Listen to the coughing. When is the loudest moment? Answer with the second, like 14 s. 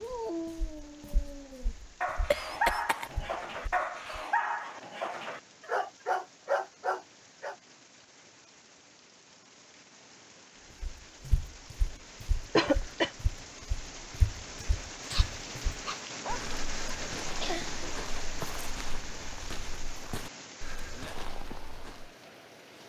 13 s.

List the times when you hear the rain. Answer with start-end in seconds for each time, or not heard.
0.0-22.8.